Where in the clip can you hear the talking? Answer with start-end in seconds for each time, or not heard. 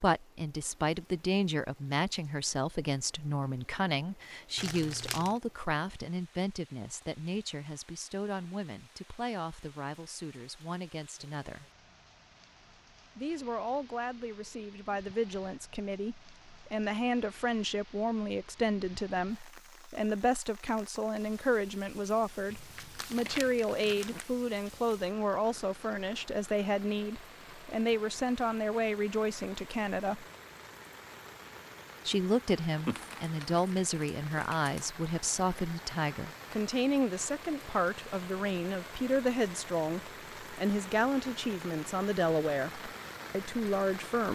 0.0-11.7, 13.2-30.2, 32.0-44.3.